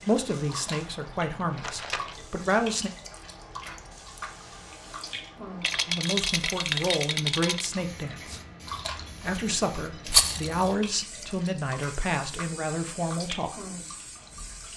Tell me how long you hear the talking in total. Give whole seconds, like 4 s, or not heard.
10 s.